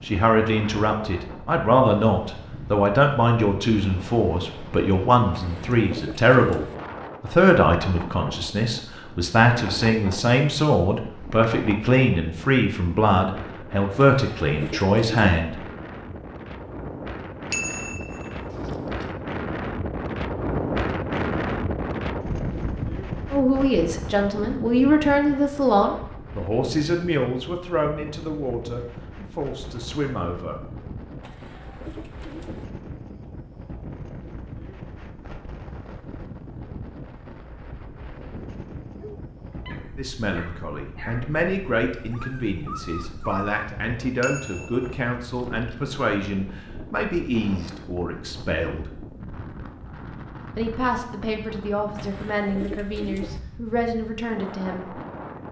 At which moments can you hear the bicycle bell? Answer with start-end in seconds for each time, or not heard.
17.5-19.1, 44.2-45.8.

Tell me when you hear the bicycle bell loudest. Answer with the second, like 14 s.
18 s.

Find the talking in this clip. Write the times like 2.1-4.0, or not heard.
0.0-15.6, 23.3-30.6, 40.0-48.9, 50.5-55.0.